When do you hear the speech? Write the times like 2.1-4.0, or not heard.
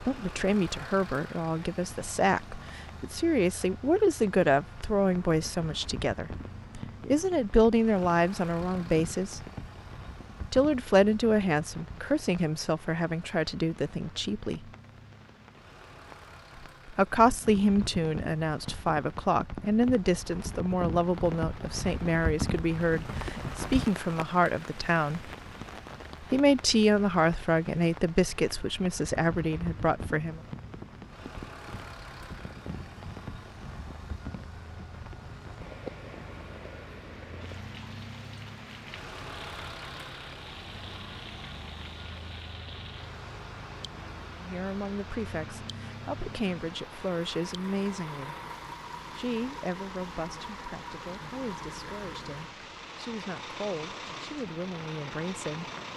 0.1-9.4, 10.5-14.6, 16.9-25.3, 26.2-30.4, 44.4-48.4, 49.1-55.6.